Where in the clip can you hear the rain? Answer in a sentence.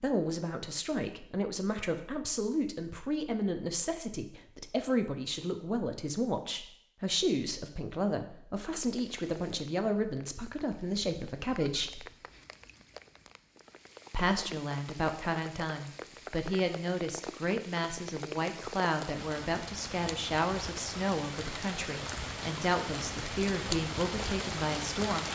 The rain can be heard from 8.7 to 25.3 s.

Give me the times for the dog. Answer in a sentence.
The dog can't be heard in this clip.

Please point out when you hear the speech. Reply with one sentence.
You can hear the speech from 0.0 to 12.1 s and from 14.1 to 25.3 s.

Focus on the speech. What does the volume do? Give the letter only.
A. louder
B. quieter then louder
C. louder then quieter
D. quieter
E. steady
E.